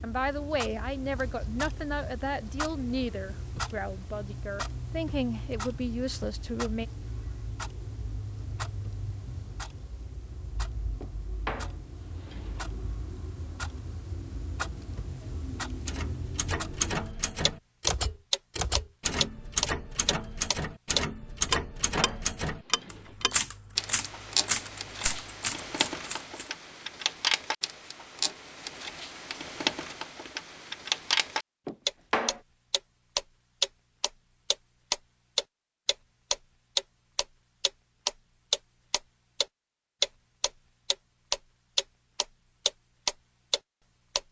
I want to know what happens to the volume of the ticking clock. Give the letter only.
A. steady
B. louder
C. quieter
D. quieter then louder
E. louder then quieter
B.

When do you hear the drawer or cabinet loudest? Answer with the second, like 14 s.
32 s.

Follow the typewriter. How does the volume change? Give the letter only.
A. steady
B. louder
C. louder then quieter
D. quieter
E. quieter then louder
A.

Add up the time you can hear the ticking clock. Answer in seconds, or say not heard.
44 s.